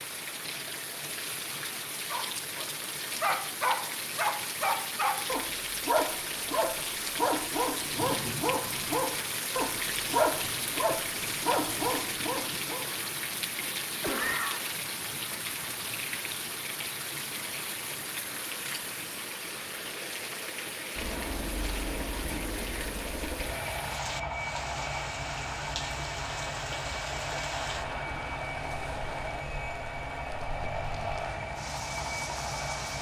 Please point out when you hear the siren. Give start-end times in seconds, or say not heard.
not heard.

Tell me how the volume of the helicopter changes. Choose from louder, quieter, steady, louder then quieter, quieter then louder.
steady.